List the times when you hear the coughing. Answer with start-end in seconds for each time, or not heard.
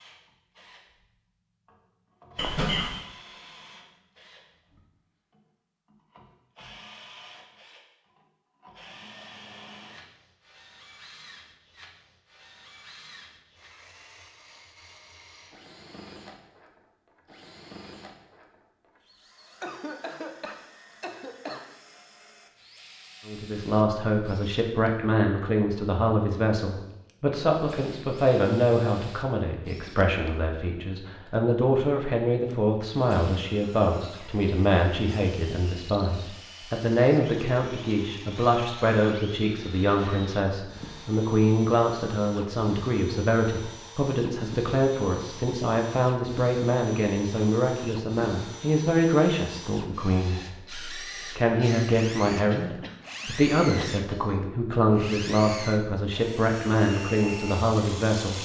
2.4-3.0, 19.6-21.6, 52.5-54.0.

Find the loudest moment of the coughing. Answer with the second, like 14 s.
3 s.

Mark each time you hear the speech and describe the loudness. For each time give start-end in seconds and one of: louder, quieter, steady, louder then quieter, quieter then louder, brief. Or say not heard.
23.2-58.4 steady.